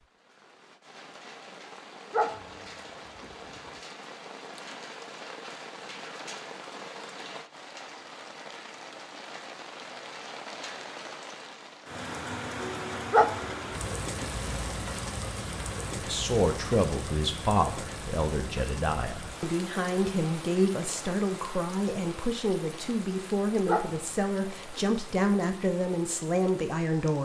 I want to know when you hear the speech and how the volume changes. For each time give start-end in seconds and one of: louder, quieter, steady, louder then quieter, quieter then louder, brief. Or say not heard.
15.9-27.2 steady.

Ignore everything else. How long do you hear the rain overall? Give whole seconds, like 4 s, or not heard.
27 s.